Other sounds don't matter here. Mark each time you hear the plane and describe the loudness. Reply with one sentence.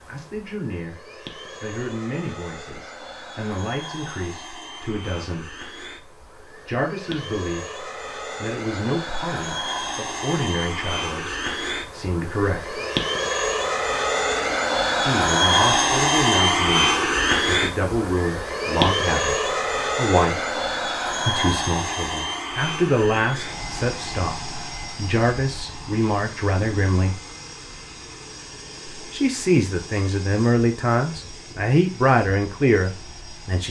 You can hear the plane from 0.0 to 33.6 s, getting louder then quieter.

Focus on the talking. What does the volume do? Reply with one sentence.
The loudness of the talking goes up.